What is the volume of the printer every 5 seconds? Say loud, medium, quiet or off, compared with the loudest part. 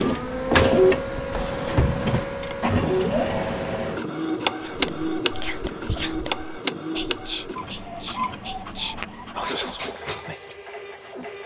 loud, medium, quiet.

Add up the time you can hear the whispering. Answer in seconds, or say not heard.
6 s.